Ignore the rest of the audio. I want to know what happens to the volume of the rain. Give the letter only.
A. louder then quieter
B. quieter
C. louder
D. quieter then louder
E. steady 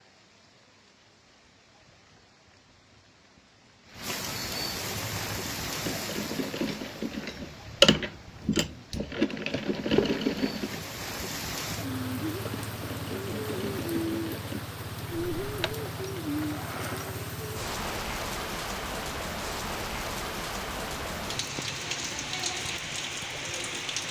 C.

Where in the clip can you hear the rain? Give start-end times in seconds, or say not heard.
0.0-24.0.